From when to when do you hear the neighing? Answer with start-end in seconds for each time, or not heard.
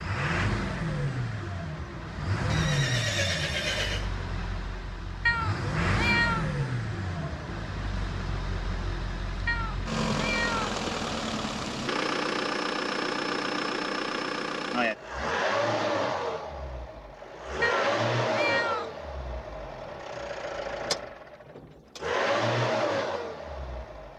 2.5-4.1.